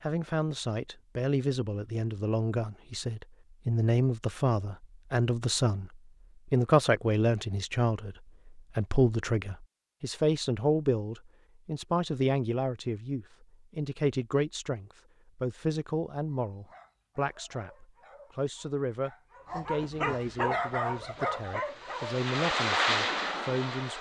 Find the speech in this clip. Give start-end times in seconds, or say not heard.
0.0-23.9.